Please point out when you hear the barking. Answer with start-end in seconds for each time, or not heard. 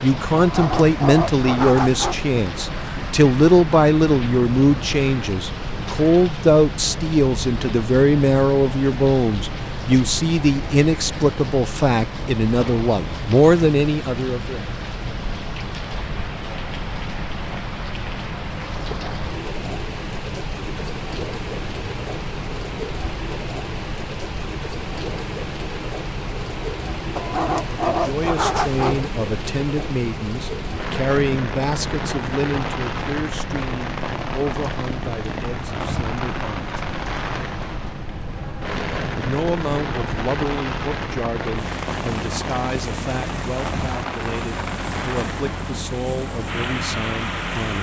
0.3-2.2, 27.1-29.1.